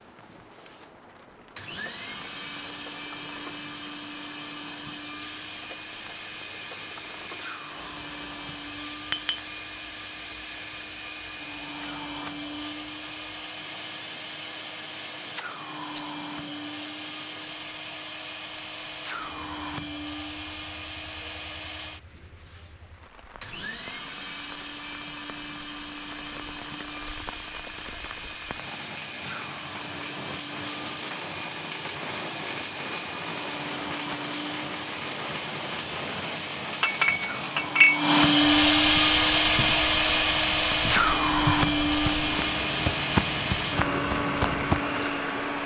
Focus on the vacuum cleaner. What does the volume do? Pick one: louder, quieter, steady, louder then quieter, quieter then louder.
louder.